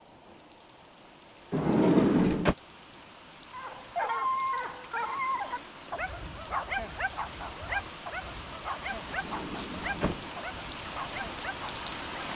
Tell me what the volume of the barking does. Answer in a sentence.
The loudness of the barking goes down.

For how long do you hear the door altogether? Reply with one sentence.
You can hear the door for 2 seconds altogether.